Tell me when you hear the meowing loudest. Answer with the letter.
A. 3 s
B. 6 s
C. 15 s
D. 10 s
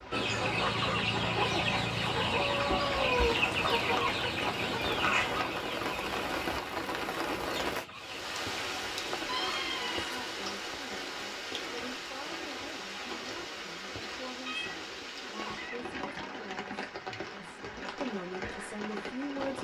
A.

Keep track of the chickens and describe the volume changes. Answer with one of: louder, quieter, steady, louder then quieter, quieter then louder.
quieter.